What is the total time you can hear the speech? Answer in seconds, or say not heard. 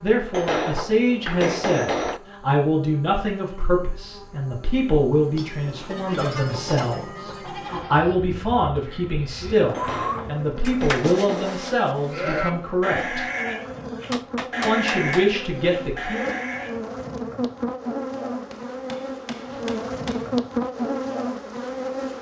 15 s.